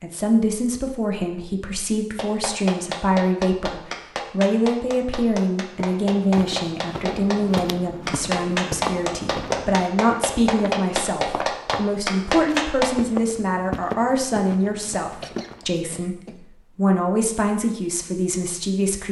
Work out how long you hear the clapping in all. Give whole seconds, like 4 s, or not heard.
11 s.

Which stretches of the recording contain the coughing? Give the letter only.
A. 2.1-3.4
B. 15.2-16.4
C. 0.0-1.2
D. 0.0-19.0
B.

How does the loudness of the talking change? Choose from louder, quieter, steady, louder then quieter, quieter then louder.
steady.